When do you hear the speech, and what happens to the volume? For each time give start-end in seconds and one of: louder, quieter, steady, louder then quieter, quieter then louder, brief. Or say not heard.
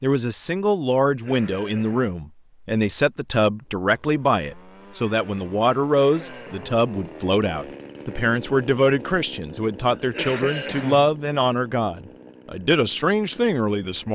0.0-14.1 steady.